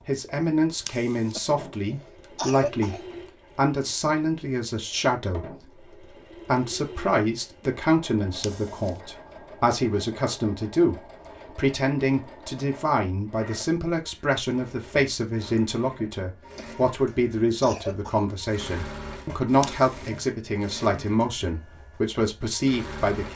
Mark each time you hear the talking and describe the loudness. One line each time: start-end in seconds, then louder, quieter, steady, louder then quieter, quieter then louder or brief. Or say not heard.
0.1-23.3 steady.